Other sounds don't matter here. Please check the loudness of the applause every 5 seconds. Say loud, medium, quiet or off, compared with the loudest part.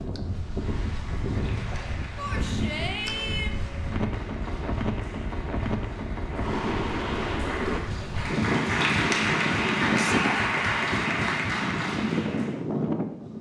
quiet, loud, loud.